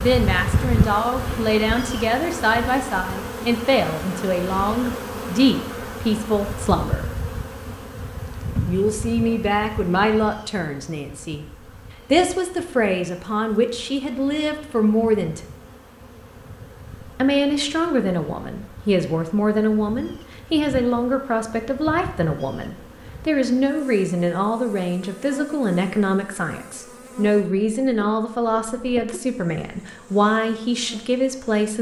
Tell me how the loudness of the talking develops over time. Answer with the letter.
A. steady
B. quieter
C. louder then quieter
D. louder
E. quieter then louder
A.